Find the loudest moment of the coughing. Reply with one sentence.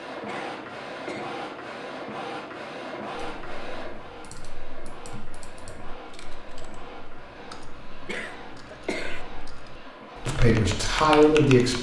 The volume of the coughing peaks at 9 seconds.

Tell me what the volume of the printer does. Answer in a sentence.
The volume of the printer goes down.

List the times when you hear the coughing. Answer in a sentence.
The coughing can be heard from 0.2 to 1.2 s and from 8.1 to 9.2 s.